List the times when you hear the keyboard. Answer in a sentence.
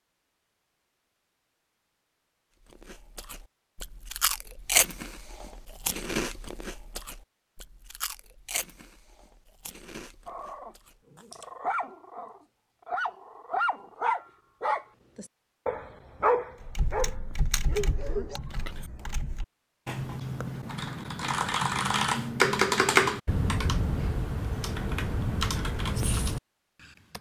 The keyboard can be heard from 16.6 to 26.4 s.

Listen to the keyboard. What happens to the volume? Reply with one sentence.
The volume of the keyboard goes up, then down.